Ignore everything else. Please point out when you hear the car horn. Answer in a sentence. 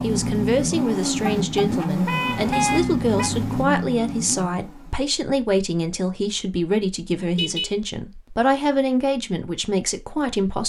The car horn can be heard from 1.2 to 3.3 s and from 7.2 to 7.8 s.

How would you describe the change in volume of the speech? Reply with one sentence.
The volume of the speech stays about the same.